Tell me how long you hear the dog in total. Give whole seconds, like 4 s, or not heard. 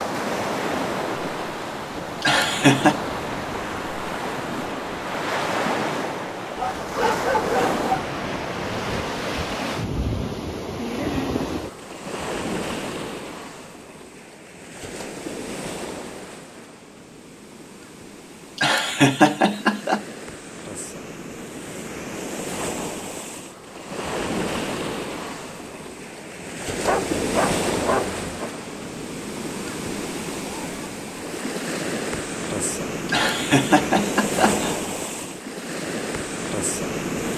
3 s.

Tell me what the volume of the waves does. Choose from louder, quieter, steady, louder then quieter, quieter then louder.
quieter then louder.